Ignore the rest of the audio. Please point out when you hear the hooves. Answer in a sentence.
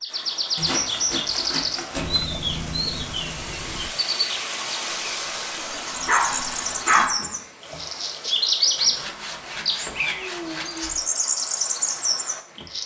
You can't hear the hooves here.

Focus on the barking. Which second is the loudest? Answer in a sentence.
The volume of the barking peaks at 7 seconds.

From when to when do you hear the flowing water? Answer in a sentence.
You can hear the flowing water from 0.0 to 12.8 s.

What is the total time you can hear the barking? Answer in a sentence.
You can hear the barking for 2 seconds altogether.